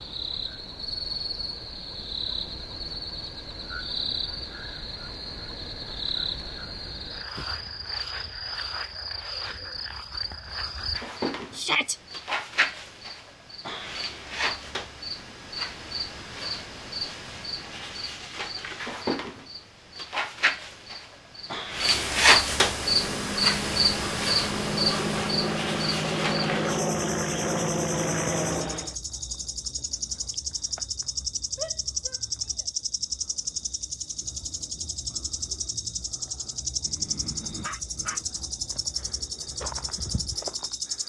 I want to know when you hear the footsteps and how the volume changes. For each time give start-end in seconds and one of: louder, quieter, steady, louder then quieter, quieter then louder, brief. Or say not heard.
not heard.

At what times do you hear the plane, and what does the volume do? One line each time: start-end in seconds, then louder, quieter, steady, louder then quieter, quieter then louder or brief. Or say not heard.
22.6-28.9 louder.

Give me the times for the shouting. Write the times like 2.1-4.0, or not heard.
11.5-11.9, 31.6-32.6.